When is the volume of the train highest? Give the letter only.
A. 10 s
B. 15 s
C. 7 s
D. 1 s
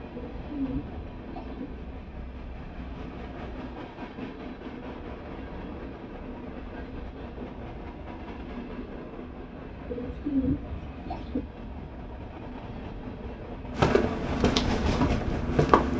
B.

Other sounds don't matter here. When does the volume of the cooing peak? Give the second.
10 s.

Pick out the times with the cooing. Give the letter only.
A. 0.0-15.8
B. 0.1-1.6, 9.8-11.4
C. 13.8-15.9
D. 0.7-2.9
B.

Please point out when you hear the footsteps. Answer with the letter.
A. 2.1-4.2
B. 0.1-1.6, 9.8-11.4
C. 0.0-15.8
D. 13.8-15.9
D.